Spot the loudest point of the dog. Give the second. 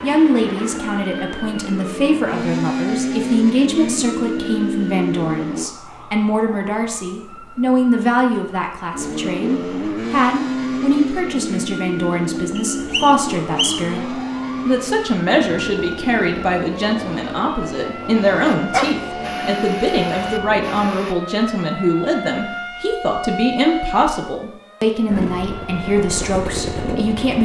19 s.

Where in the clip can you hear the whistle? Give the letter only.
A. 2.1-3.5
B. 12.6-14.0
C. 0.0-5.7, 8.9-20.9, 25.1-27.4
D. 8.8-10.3
B.